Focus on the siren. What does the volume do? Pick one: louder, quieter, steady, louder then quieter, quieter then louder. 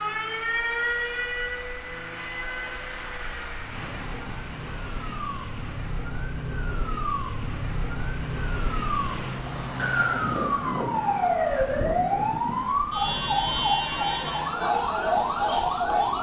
quieter then louder.